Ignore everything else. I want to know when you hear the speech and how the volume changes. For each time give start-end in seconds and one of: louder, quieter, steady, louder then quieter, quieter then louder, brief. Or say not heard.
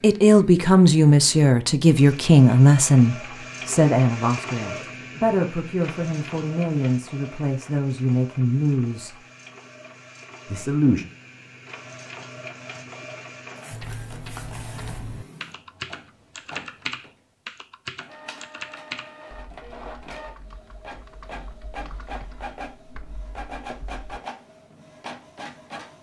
0.0-9.2 quieter
10.4-11.1 brief.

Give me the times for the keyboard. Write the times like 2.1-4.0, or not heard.
13.7-24.1.